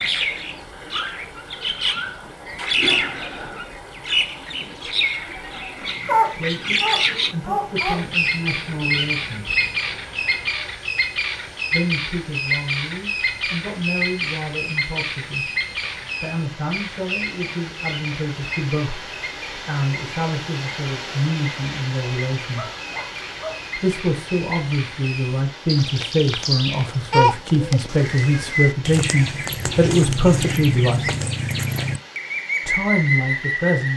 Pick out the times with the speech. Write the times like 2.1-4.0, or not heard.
6.3-9.6, 11.7-15.4, 16.2-22.8, 23.8-31.1, 32.6-33.9.